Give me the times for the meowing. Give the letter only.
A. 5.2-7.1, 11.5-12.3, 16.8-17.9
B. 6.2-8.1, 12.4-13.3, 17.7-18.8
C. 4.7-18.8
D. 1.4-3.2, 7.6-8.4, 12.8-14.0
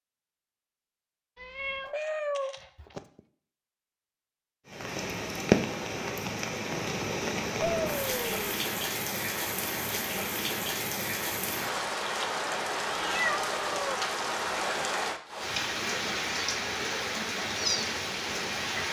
D.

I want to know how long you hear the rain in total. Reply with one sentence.
You can hear the rain for 14 seconds altogether.